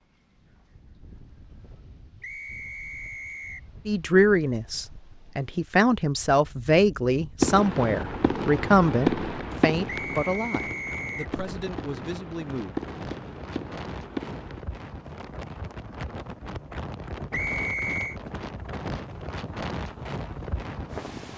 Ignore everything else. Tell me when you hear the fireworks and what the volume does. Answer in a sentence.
You can hear the fireworks from 7.4 to 14.6 s, getting quieter then louder.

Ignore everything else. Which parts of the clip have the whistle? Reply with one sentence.
The whistle can be heard from 2.2 to 3.6 s, from 9.8 to 11.3 s and from 17.3 to 18.1 s.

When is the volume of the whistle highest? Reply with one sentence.
The loudest moment of the whistle is at 18 seconds.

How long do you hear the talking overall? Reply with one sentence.
You can hear the talking for 9 seconds altogether.